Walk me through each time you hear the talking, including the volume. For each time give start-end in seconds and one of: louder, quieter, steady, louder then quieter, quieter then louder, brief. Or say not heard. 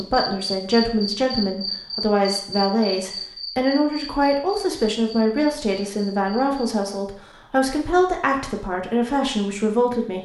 0.0-10.2 steady.